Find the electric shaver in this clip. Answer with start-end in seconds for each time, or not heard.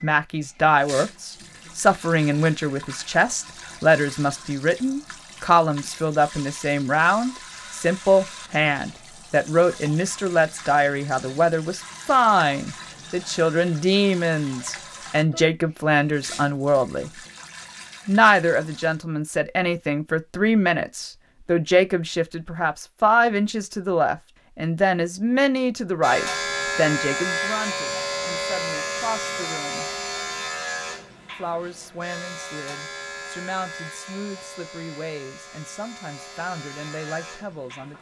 26.0-37.9.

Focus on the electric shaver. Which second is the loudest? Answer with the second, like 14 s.
27 s.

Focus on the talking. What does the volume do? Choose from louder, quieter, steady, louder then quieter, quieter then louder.
quieter.